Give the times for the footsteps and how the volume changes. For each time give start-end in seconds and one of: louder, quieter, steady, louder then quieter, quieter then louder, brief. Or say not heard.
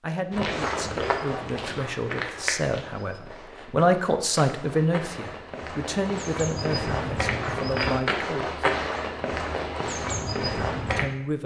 0.3-11.1 quieter then louder.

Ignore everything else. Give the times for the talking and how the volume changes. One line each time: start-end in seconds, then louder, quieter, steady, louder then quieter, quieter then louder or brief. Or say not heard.
0.0-8.7 louder then quieter
10.9-11.4 brief.